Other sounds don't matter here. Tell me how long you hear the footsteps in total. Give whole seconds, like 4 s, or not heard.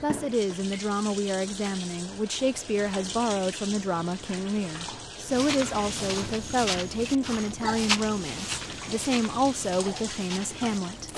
6 s.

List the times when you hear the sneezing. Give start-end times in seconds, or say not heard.
not heard.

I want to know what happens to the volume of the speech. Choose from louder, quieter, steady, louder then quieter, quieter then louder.
steady.